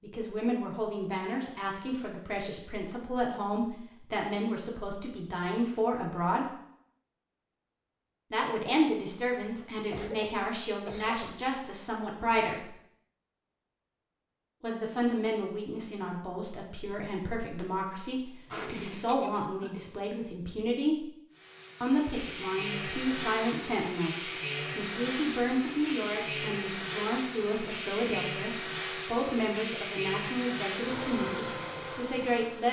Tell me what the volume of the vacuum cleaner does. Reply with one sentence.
The volume of the vacuum cleaner stays about the same.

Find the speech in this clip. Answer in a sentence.
The speech can be heard from 0.0 to 6.5 s, from 8.3 to 12.7 s, from 14.6 to 21.1 s and from 21.8 to 32.6 s.